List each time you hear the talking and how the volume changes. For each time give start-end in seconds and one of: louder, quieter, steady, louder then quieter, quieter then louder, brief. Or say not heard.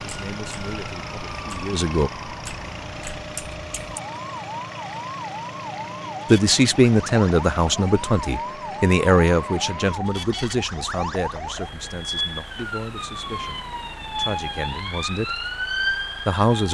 0.0-2.1 brief
6.3-15.3 quieter
16.2-16.7 brief.